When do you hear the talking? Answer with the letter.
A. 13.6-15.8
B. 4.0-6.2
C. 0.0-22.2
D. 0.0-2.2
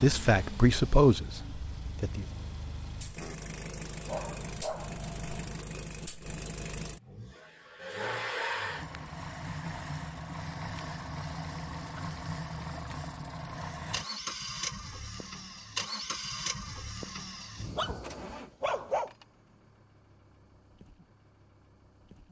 D.